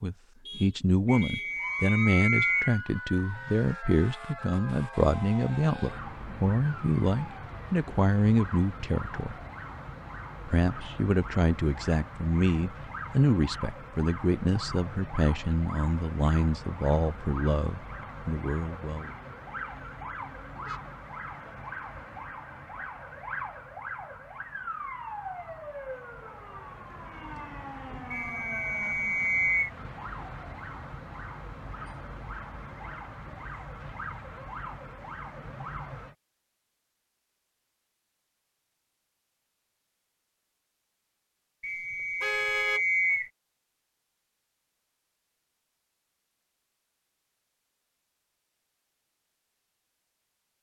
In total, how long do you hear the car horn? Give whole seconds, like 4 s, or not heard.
2 s.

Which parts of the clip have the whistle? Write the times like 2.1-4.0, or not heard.
1.1-2.8, 28.1-29.7, 41.6-43.3.